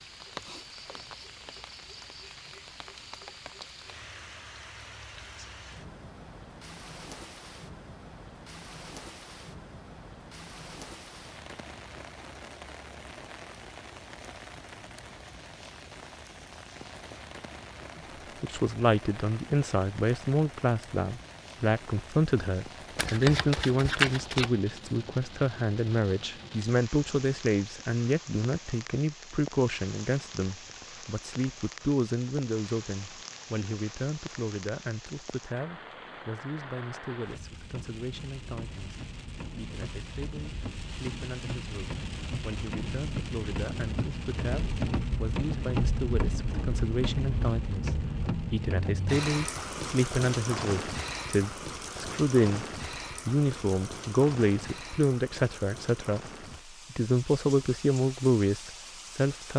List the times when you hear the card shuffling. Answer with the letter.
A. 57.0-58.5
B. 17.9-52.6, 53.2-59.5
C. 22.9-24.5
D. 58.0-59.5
C.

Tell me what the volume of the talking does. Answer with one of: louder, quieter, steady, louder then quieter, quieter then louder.
quieter then louder.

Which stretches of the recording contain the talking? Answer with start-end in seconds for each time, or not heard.
17.9-52.6, 53.2-59.5.